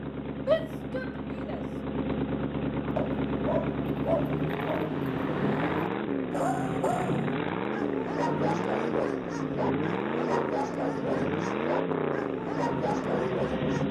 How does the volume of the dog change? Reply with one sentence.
The loudness of the dog stays about the same.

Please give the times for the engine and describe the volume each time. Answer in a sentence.
The engine can be heard from 0.0 to 13.8 s, at a steady volume.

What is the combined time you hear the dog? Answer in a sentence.
You can hear the dog for 11 seconds altogether.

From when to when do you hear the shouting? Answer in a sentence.
You can hear the shouting from 0.5 to 1.6 s.